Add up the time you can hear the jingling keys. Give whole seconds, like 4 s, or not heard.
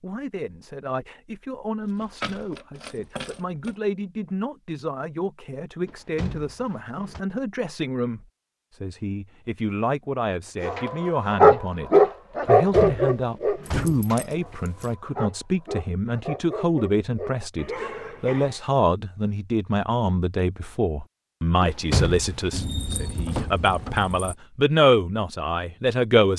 5 s.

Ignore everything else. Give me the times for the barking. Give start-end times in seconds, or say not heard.
10.6-18.6.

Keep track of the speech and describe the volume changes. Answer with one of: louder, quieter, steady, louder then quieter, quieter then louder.
louder.